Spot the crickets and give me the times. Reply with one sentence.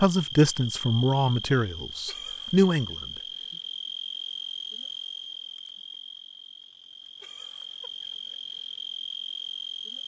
You can hear the crickets from 0.0 to 10.0 s.